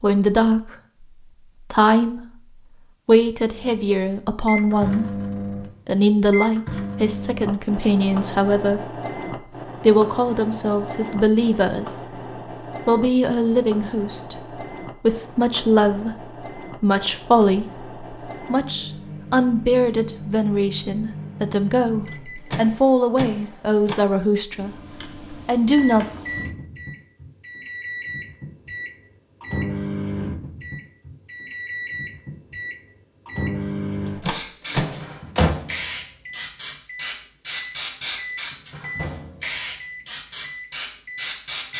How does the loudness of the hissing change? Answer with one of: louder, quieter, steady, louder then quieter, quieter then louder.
steady.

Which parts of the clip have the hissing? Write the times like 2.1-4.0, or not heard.
34.2-41.7.